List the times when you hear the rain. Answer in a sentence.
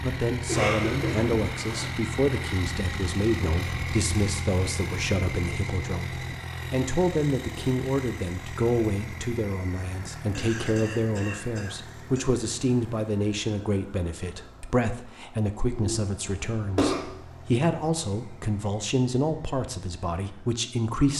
You can't hear the rain here.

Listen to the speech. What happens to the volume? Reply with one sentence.
The volume of the speech stays about the same.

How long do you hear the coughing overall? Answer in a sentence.
The coughing can be heard for 5 seconds in total.